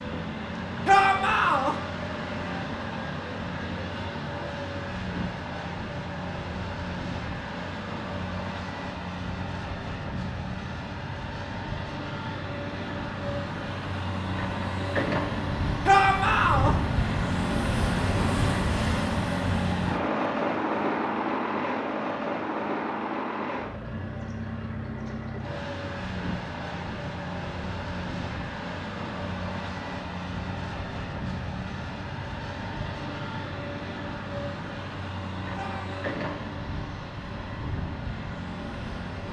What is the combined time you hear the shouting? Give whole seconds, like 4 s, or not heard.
2 s.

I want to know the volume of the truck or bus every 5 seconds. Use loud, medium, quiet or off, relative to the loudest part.
medium, medium, medium, loud, loud, medium, medium, medium.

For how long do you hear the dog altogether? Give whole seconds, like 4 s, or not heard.
not heard.